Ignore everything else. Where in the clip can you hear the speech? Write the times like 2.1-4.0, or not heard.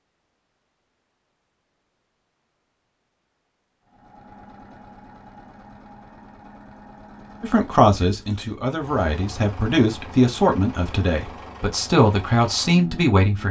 7.4-13.4.